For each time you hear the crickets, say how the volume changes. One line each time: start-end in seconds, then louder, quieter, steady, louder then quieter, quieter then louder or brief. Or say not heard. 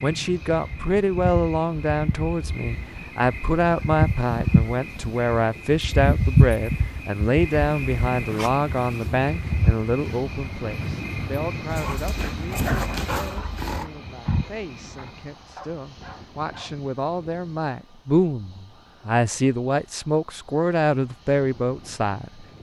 0.0-15.3 louder then quieter.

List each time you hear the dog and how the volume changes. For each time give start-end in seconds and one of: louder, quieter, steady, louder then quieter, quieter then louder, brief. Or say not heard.
11.7-16.8 quieter then louder.